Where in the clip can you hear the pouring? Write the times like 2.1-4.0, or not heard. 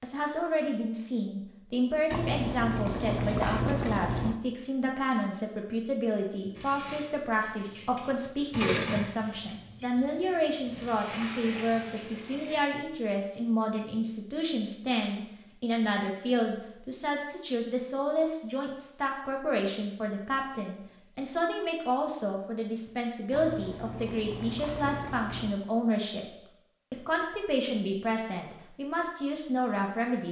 2.1-4.4, 10.9-12.6, 23.3-25.6.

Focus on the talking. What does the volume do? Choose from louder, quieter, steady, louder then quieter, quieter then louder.
steady.